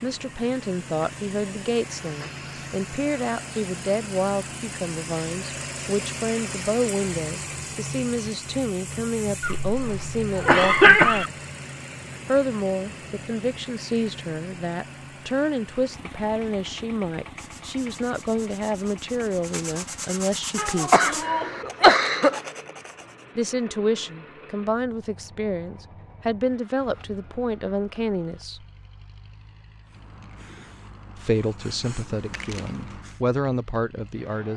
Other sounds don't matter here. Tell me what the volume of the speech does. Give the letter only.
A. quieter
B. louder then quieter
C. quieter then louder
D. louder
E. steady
E.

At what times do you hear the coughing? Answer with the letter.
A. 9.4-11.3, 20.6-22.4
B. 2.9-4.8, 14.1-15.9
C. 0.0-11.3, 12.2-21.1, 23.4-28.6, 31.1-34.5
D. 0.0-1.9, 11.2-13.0
A.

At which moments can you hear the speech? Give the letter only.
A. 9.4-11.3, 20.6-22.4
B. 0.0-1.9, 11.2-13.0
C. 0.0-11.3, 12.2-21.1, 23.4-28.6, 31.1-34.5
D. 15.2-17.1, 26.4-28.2
C.